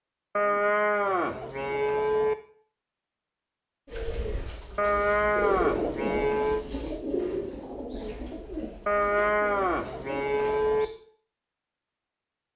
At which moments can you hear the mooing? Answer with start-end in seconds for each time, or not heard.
0.3-2.4, 4.8-6.7, 8.8-10.8.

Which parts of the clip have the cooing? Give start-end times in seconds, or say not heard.
3.9-10.9.